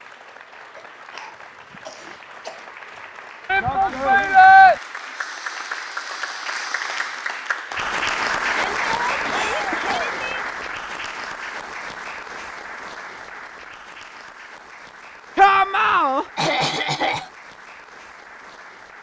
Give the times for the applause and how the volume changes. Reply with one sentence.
You can hear the applause from 0.0 to 18.9 s, getting louder then quieter.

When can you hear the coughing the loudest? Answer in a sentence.
The loudest moment of the coughing is at 17 seconds.